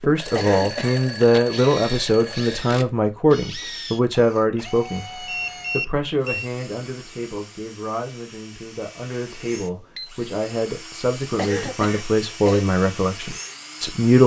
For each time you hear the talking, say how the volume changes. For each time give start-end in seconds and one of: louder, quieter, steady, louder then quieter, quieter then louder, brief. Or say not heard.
0.1-14.2 quieter then louder.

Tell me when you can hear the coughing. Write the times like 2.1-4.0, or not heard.
0.3-1.0, 11.3-12.7.